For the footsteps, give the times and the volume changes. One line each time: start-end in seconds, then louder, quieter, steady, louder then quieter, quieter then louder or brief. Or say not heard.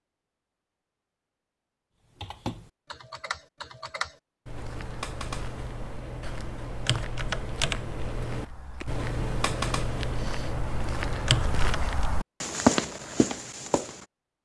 4.5-14.1 louder.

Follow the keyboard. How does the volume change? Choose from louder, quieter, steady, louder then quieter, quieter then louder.
louder.